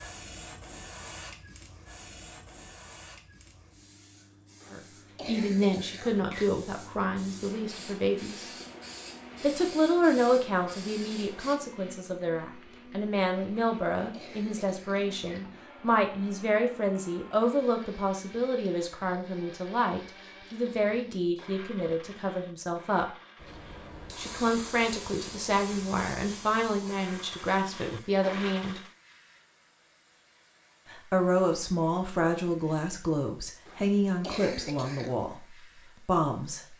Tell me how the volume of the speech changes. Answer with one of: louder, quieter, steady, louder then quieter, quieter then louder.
steady.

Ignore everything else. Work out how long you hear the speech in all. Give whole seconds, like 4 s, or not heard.
28 s.